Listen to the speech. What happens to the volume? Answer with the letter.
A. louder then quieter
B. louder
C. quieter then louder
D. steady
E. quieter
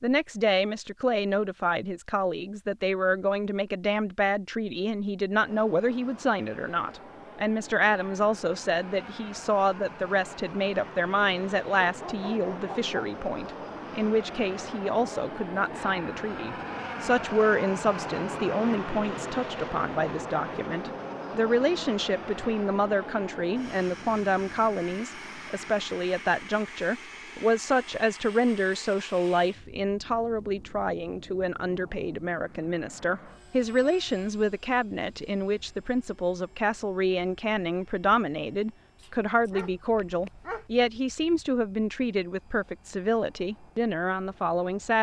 D.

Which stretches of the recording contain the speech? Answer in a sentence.
You can hear the speech from 0.0 to 44.9 s.